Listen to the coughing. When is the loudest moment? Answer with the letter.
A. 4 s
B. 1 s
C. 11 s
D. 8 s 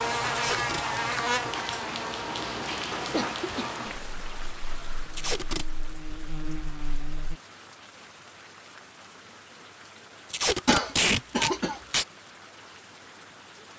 C.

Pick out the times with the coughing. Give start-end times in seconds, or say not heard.
3.1-3.7, 10.7-11.8.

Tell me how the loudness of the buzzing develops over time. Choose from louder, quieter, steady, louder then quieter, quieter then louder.
quieter then louder.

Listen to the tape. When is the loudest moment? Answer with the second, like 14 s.
11 s.